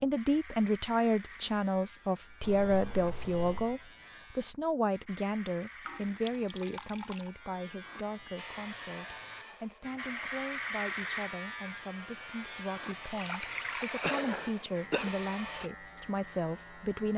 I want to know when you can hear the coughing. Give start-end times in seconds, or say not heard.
14.0-15.1.